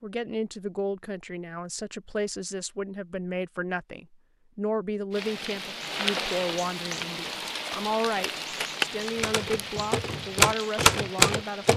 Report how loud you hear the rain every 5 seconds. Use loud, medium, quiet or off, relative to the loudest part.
off, loud, medium.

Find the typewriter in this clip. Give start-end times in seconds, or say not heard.
9.2-11.7.